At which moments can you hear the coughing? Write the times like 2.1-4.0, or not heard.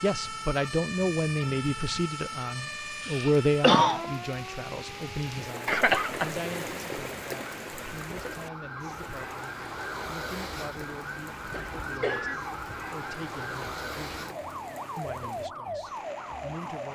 3.0-4.0, 5.7-6.3, 11.5-12.4.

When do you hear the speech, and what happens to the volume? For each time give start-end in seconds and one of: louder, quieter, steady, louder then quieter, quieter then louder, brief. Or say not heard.
0.0-14.3 quieter
14.9-16.9 brief.